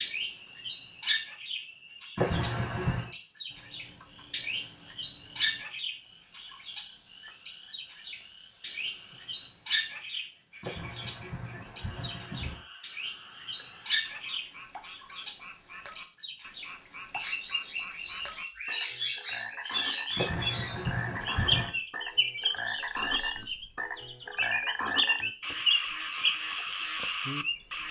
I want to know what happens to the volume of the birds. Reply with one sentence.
The volume of the birds stays about the same.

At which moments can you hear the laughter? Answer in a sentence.
The laughter can be heard from 2.1 to 3.1 s, from 10.6 to 12.7 s and from 20.1 to 21.7 s.